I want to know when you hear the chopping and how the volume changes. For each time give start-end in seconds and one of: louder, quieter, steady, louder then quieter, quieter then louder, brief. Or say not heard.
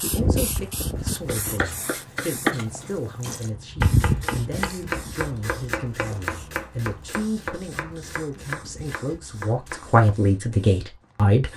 1.1-10.2 quieter.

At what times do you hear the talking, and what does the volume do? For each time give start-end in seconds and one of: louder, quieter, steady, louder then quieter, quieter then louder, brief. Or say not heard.
0.0-11.5 louder.